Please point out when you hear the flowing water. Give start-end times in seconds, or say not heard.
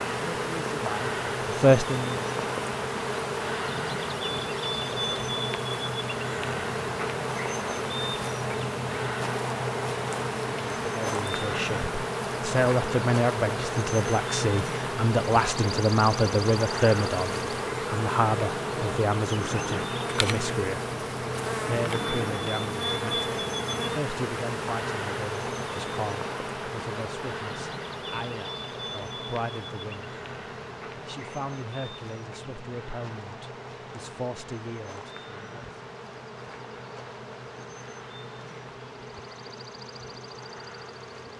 not heard.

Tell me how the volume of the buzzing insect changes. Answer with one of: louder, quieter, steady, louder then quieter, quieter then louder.
quieter.